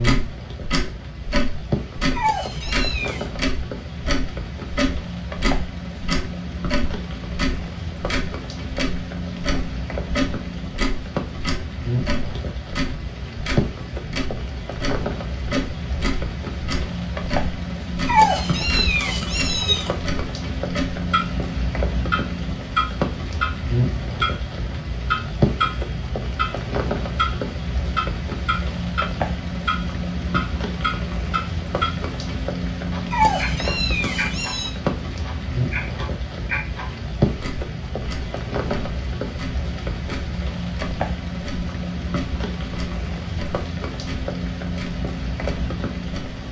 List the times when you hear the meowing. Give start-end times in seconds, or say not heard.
2.1-3.2, 18.1-19.9, 33.1-34.8.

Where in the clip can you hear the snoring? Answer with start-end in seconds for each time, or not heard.
not heard.